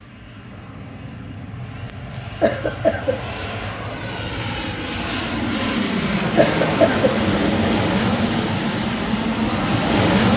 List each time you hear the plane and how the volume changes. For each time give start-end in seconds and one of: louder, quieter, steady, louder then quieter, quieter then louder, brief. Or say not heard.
0.0-10.3 louder.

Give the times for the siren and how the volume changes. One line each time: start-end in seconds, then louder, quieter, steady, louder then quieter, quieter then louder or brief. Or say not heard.
not heard.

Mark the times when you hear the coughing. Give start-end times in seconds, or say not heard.
2.4-3.1, 6.3-7.1.